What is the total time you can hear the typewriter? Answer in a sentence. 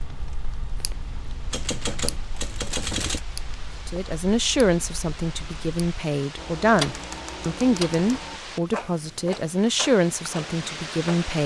You can hear the typewriter for 3 seconds altogether.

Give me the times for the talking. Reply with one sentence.
You can hear the talking from 3.9 to 11.4 s.